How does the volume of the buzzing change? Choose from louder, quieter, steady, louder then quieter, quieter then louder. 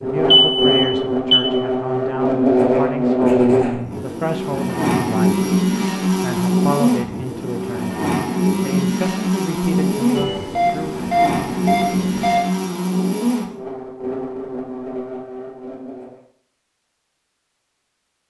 quieter.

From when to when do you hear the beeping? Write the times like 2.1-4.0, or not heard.
0.3-1.4, 10.2-12.4.